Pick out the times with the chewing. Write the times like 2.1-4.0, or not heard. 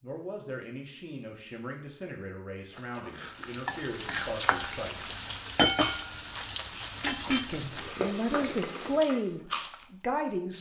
2.7-9.9.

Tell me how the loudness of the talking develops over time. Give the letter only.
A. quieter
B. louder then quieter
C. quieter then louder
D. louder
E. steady
D.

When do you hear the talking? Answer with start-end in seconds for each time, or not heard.
0.0-5.0, 7.0-10.5.